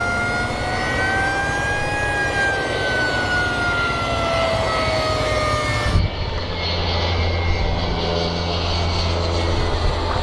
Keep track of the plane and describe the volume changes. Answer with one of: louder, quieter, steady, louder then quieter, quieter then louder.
steady.